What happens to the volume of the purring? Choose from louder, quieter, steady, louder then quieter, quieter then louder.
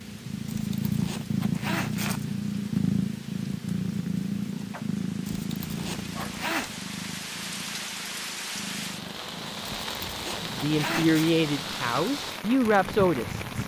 quieter.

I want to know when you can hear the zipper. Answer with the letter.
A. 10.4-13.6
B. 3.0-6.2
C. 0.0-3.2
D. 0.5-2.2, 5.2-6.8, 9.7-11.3
D.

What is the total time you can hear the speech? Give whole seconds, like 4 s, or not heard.
3 s.